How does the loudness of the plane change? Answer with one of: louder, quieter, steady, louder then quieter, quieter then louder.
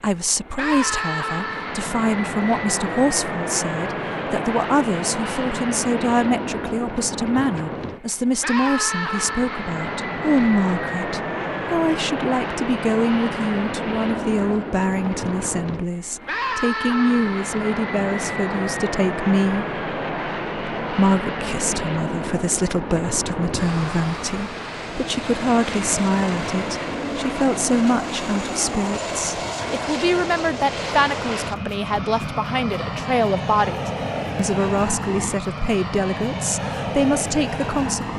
steady.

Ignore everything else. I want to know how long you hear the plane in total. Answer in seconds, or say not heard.
38 s.